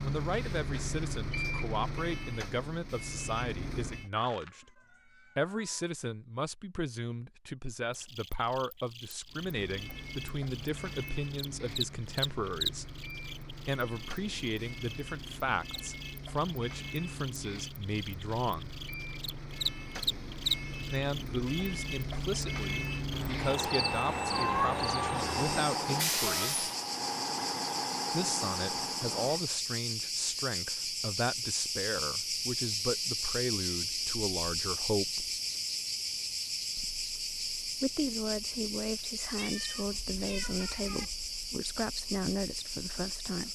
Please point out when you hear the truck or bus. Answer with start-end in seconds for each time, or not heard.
0.0-4.1, 9.2-29.4.